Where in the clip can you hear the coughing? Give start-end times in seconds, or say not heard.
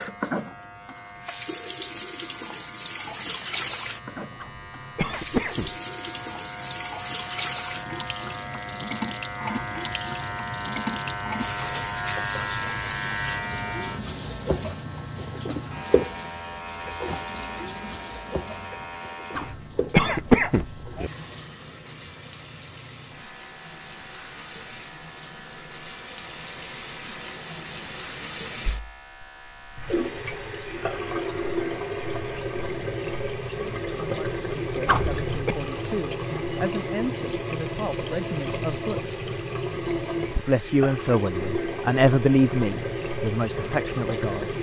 4.4-5.8, 19.4-21.1, 34.9-35.5.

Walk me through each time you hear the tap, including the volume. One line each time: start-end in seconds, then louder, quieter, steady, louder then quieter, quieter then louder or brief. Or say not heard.
0.0-44.5 quieter then louder.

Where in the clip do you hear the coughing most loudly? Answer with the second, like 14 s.
20 s.